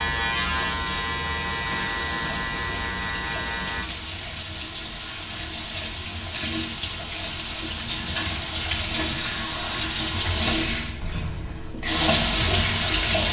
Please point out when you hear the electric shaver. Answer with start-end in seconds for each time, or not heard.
0.0-3.9.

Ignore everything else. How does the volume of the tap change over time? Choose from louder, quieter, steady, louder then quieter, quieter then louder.
louder.